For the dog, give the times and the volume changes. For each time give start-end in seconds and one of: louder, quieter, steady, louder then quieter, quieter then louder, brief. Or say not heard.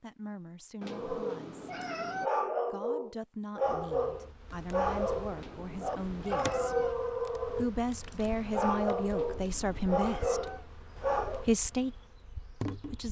0.8-11.5 steady.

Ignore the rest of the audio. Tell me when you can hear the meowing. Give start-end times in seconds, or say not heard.
0.8-2.3, 5.3-7.0, 9.1-10.7.